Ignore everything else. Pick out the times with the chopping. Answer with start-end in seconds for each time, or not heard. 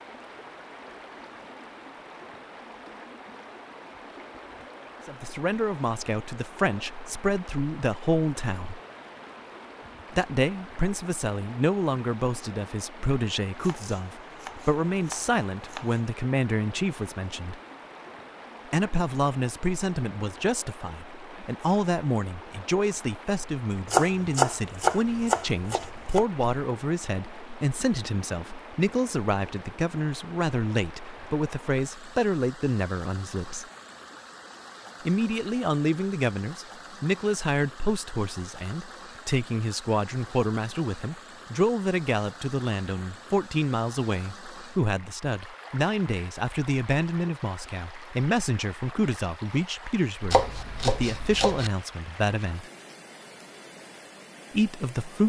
13.6-16.1, 23.9-26.2, 50.3-51.7.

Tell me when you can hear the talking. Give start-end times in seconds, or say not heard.
5.0-8.8, 10.1-17.6, 18.6-33.6, 35.0-52.7, 54.5-55.2.